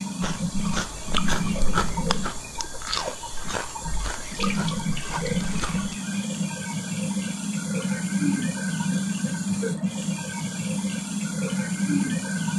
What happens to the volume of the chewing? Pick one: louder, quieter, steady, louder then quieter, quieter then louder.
quieter.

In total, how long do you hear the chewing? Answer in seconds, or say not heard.
6 s.